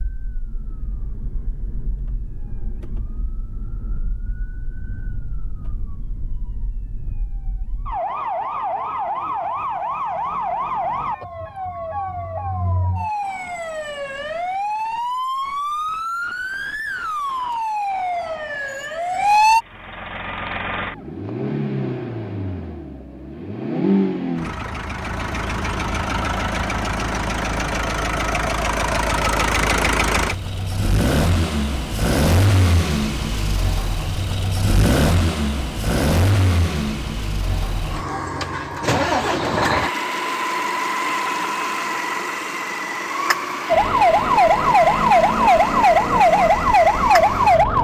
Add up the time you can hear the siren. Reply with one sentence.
The siren can be heard for 24 seconds in total.